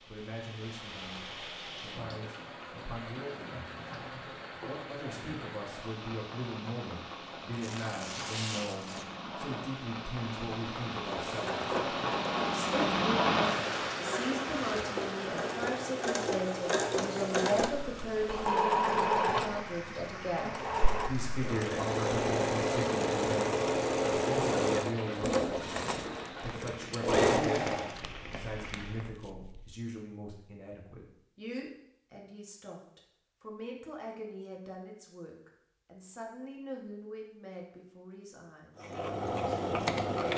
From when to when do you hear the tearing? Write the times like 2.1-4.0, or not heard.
7.5-9.1, 14.4-14.8, 27.9-29.8.